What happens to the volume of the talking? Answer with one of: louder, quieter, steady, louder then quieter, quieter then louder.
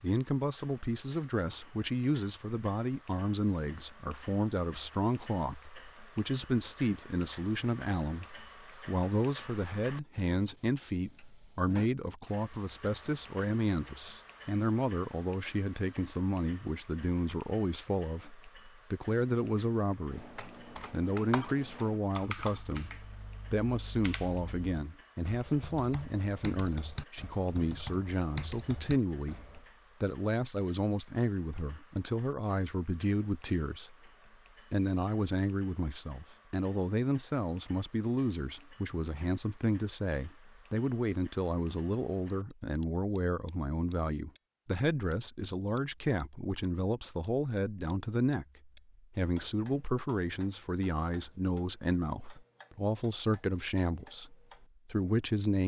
steady.